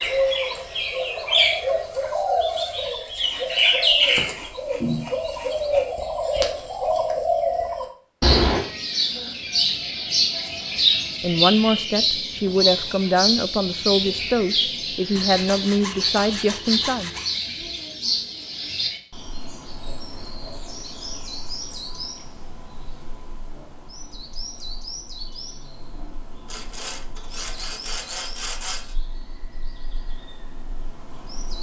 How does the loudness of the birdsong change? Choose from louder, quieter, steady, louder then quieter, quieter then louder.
quieter.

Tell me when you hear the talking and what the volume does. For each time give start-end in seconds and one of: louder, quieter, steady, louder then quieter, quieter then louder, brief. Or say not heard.
11.2-17.1 steady.